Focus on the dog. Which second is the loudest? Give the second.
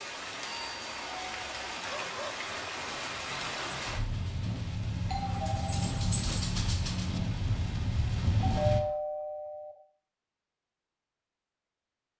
6 s.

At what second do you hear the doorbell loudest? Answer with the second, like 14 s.
9 s.